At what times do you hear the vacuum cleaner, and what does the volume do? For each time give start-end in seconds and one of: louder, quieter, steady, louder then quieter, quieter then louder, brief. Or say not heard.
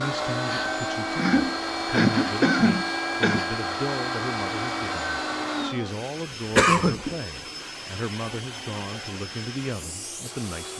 0.0-10.7 quieter.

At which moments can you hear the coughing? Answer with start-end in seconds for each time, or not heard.
1.1-3.4, 6.5-7.0.